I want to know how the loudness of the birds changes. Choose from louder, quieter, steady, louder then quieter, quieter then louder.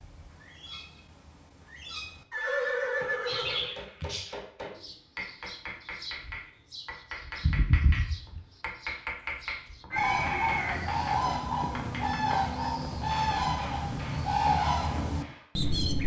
louder.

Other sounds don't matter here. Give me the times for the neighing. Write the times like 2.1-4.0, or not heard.
2.3-3.8, 9.9-10.9.